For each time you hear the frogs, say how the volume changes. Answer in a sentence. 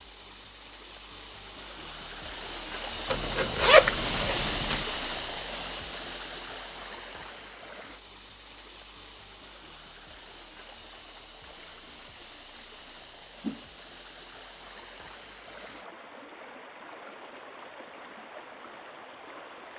You can't hear the frogs here.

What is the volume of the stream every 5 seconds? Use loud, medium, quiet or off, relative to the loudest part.
loud, medium, quiet, medium.